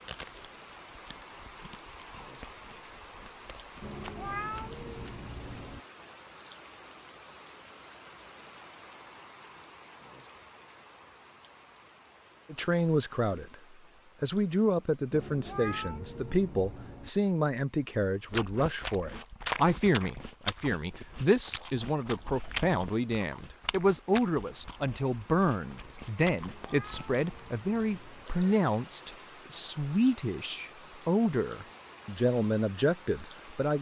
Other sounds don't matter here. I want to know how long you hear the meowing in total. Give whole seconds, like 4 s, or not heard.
6 s.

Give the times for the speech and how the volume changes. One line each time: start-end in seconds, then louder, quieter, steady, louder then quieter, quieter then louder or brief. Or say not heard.
12.5-13.6 brief
14.2-33.7 steady.